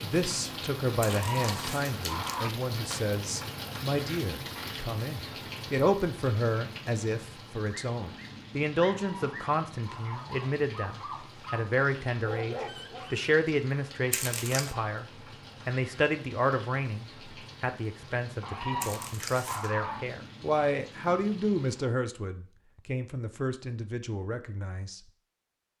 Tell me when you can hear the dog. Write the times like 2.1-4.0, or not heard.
7.7-13.3.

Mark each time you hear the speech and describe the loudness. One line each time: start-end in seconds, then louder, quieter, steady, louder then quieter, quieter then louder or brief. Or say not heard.
0.0-25.0 steady.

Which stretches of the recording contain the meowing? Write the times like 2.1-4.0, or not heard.
1.0-2.5, 8.9-10.3, 18.4-20.1.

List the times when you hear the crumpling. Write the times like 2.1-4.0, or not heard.
1.0-2.4, 14.1-14.8, 18.8-19.7.